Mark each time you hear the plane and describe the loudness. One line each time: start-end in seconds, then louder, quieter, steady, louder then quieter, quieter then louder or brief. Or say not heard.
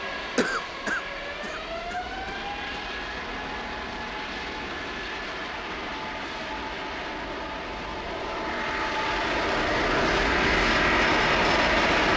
0.0-12.1 louder.